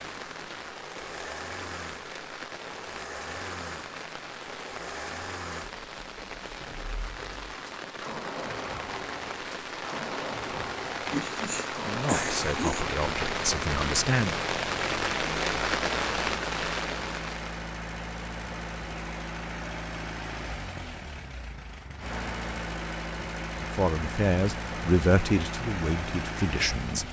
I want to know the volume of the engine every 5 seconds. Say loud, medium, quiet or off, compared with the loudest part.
medium, medium, loud, loud, loud, loud.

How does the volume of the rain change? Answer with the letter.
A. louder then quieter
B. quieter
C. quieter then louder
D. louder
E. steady
D.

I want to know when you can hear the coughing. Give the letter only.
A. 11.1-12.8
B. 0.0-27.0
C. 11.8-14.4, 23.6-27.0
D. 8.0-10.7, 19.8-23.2
A.